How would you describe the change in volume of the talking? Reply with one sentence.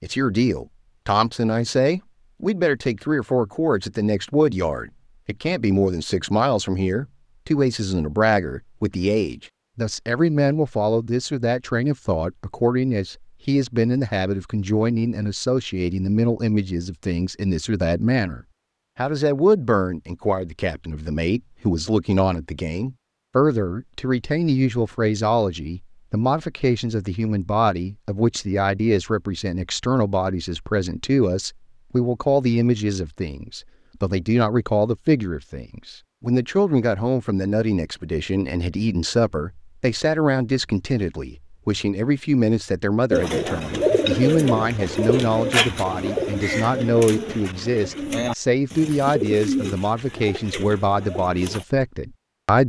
The volume of the talking stays about the same.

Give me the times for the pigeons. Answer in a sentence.
The pigeons can be heard from 43.1 to 51.6 s.